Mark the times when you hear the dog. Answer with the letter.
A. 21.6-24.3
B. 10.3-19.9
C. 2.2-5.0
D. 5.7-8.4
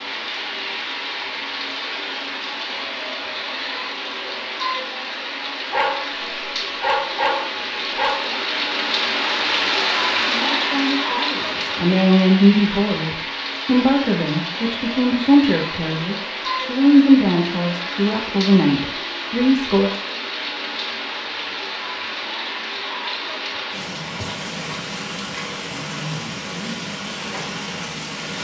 D.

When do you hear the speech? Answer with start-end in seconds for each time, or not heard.
10.3-19.9.